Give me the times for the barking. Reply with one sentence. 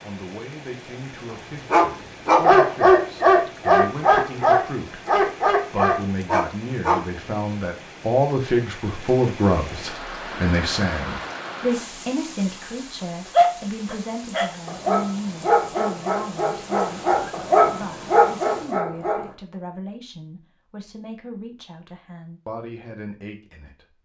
The barking can be heard from 1.3 to 7.0 s and from 13.3 to 19.4 s.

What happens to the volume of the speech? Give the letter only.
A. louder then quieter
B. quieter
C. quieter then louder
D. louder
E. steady
A.